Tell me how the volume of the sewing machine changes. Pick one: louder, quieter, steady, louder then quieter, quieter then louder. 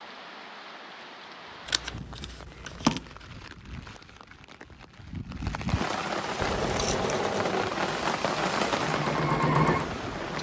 quieter then louder.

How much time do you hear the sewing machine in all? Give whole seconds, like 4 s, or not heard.
4 s.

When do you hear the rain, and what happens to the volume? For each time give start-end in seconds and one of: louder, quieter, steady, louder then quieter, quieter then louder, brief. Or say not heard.
0.0-10.3 louder.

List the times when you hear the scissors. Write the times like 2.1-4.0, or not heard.
1.6-3.0, 6.4-7.2.